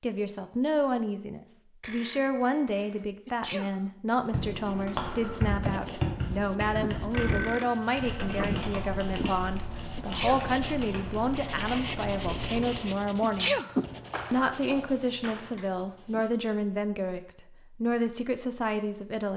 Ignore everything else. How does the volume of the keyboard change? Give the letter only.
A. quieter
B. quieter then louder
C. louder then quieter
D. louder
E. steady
A.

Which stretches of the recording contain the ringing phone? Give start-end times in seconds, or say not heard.
1.8-3.0, 7.1-8.7, 14.1-15.7.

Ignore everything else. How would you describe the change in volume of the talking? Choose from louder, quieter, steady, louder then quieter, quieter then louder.
steady.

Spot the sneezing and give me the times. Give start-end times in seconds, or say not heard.
3.2-3.8, 9.9-10.5, 13.2-13.8.